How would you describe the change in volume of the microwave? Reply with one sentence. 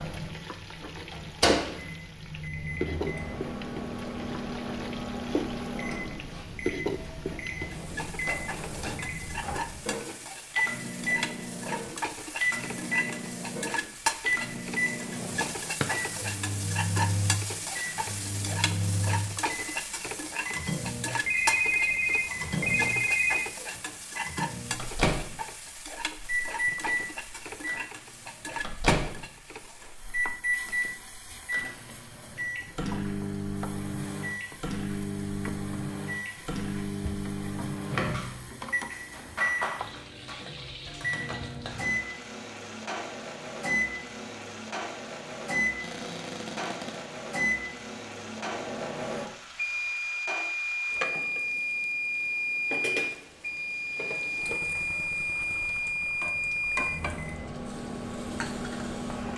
The volume of the microwave stays about the same.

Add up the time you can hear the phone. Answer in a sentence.
The phone can be heard for 2 seconds in total.